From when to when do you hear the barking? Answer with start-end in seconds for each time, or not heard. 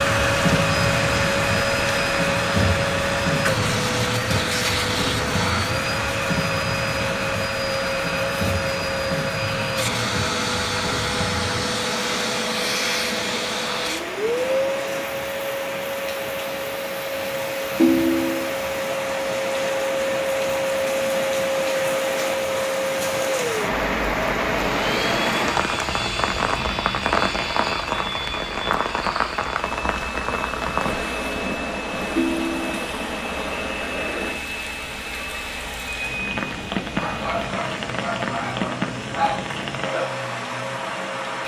37.0-39.5.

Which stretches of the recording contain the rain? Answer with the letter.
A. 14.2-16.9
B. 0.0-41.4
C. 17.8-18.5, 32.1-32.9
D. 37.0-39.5
B.